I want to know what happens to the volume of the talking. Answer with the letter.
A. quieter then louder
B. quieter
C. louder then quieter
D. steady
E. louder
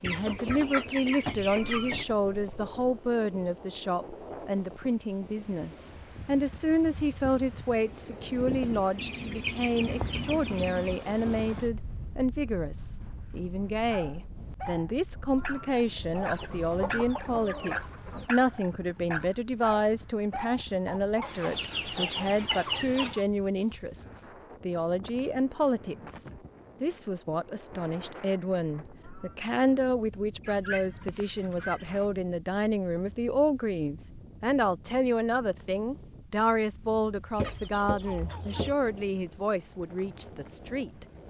D.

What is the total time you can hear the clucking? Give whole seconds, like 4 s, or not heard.
11 s.